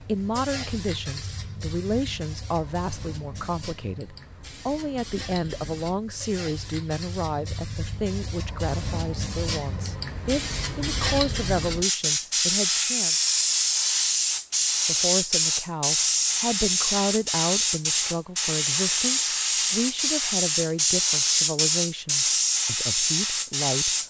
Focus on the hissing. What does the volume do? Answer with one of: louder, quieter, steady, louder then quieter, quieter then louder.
louder.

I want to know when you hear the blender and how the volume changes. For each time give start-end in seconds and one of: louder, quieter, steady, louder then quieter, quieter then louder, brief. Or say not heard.
not heard.